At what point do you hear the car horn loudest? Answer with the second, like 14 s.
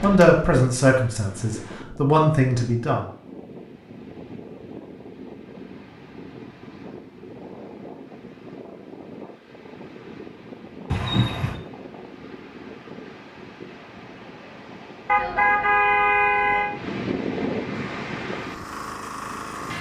16 s.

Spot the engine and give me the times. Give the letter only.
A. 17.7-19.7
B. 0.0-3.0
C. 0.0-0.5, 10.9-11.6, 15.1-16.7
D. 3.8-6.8
A.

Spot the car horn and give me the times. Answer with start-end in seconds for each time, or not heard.
0.0-0.5, 10.9-11.6, 15.1-16.7.